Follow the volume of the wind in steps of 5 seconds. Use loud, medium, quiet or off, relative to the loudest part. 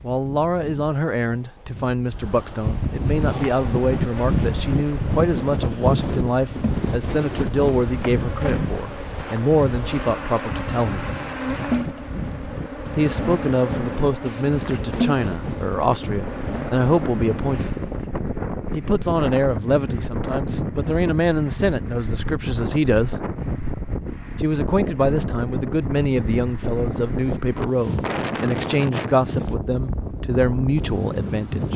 loud, loud, medium, loud, loud, loud, loud.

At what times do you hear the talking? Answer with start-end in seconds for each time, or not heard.
0.0-11.1, 12.9-17.8, 18.7-23.2, 24.4-31.7.